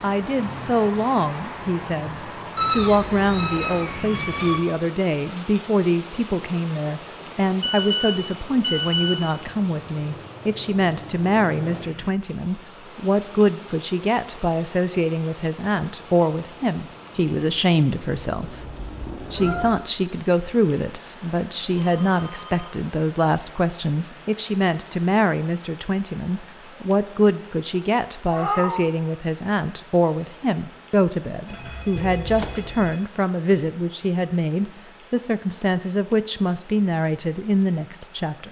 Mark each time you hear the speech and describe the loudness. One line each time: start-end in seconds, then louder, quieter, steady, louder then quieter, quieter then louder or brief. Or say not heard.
0.0-38.4 steady.